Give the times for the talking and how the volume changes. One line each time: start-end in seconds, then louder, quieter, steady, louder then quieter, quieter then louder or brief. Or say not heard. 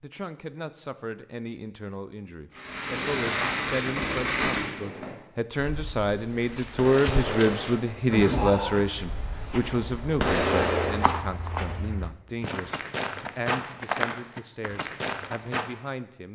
0.0-16.3 louder then quieter.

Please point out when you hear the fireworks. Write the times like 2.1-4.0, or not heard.
2.5-11.2.